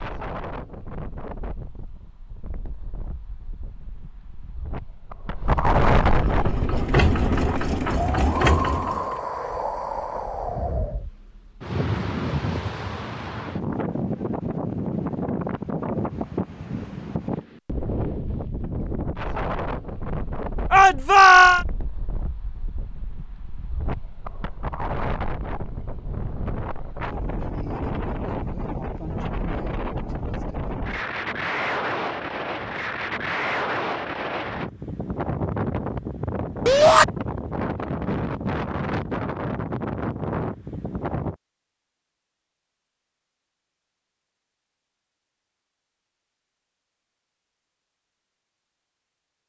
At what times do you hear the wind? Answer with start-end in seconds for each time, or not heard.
0.0-41.4.